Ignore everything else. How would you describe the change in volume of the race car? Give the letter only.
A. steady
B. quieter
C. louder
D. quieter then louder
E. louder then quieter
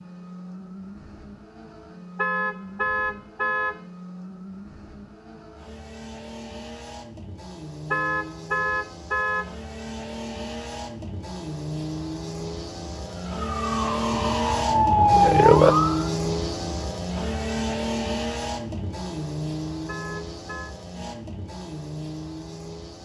E.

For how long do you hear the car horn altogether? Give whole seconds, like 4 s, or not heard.
4 s.